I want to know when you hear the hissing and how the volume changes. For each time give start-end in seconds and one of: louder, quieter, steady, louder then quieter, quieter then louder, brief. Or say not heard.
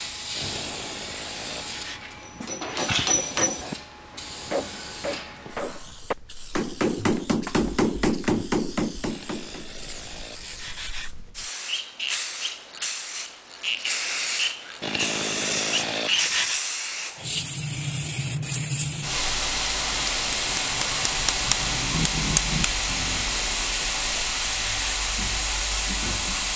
0.0-26.5 quieter then louder.